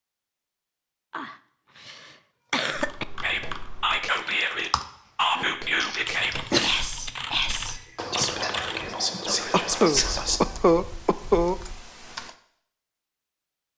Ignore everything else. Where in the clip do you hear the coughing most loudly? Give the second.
11 s.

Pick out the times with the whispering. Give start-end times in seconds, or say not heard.
3.2-10.4.